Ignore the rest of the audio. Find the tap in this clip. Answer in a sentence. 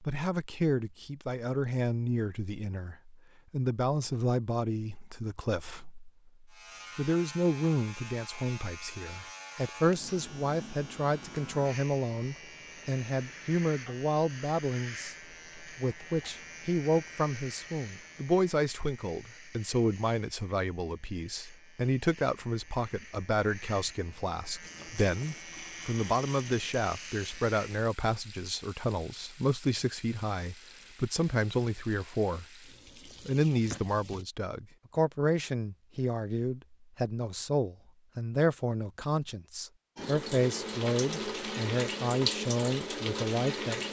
You can hear the tap from 24.6 to 34.2 s and from 40.0 to 43.8 s.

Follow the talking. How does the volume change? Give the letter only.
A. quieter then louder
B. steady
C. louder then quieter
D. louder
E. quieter
B.